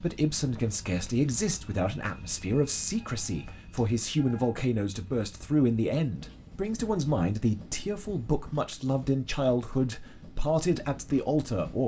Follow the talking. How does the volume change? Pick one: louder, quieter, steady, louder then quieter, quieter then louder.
steady.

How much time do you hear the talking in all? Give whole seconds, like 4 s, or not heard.
12 s.